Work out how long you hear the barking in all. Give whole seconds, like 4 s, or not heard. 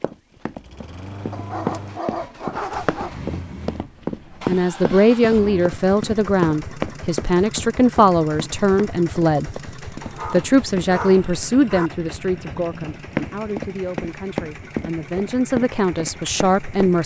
4 s.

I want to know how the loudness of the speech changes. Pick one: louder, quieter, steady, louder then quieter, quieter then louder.
quieter then louder.